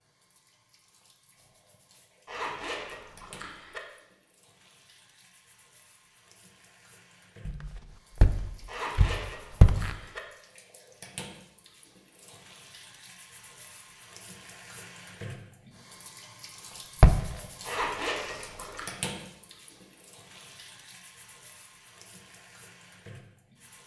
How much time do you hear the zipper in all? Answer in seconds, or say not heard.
4 s.